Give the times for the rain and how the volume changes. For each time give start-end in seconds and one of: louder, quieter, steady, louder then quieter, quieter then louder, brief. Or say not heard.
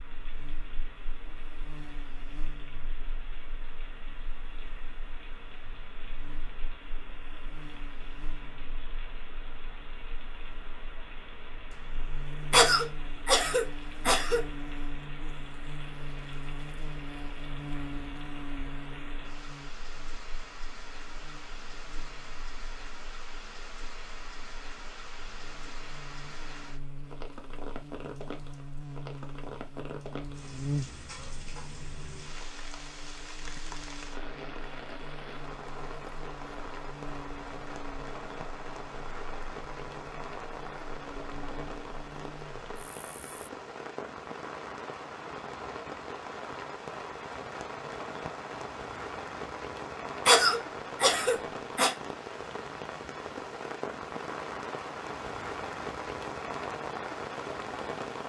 0.0-58.2 louder.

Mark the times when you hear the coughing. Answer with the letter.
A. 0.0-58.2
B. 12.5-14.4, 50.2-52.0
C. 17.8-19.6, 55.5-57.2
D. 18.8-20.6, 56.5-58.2
B.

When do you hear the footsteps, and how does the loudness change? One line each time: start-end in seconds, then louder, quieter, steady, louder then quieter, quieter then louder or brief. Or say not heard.
not heard.